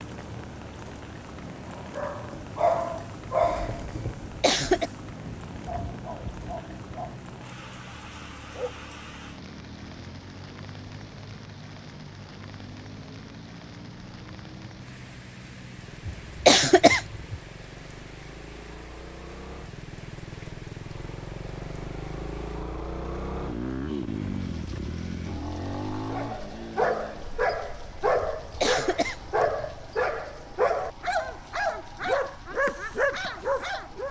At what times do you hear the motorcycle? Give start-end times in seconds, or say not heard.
0.0-34.0.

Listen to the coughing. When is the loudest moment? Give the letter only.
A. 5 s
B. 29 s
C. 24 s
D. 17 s
D.